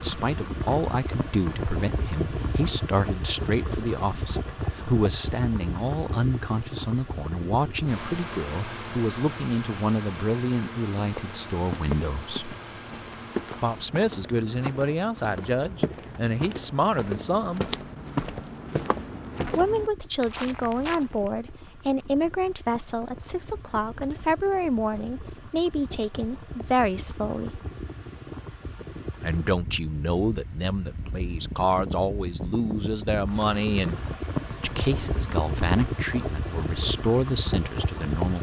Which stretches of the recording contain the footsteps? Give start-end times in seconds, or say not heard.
10.9-21.3.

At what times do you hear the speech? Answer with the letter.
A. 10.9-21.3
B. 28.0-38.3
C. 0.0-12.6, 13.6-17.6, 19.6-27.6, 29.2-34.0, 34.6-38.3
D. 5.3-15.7
C.